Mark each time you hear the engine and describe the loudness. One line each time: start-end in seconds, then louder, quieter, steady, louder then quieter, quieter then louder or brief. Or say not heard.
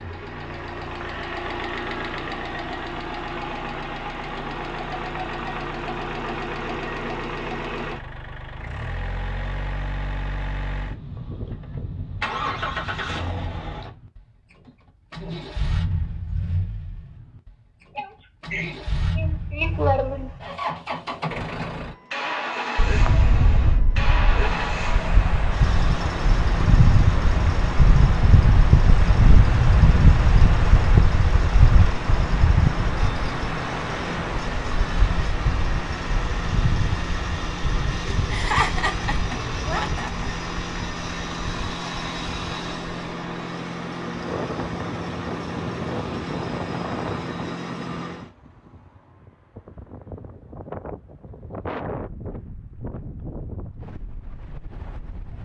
0.0-48.3 steady.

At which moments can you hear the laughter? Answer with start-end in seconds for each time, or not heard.
17.9-20.3, 38.3-40.3.